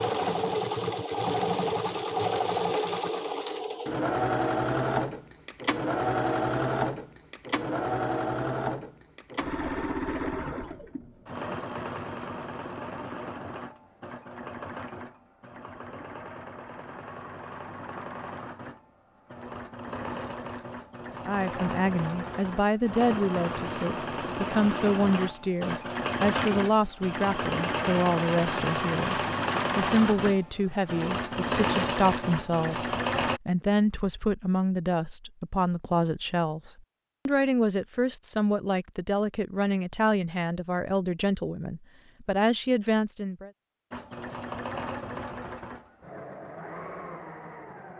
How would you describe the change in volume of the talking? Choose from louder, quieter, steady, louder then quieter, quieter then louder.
steady.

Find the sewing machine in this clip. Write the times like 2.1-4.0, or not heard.
0.0-33.4, 43.9-47.9.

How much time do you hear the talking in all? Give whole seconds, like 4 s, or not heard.
22 s.